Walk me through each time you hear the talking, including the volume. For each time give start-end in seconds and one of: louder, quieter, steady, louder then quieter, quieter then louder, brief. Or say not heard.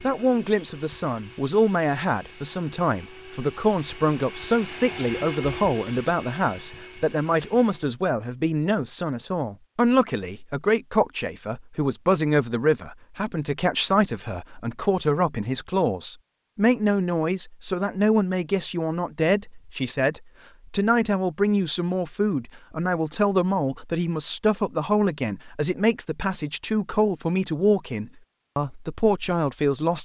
0.0-30.0 steady.